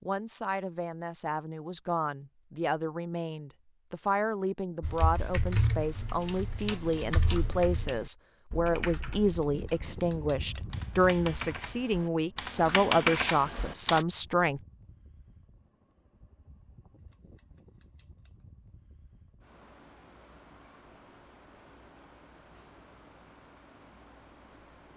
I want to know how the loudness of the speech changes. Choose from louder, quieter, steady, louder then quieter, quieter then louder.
louder.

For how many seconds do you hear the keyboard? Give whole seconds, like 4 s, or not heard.
9 s.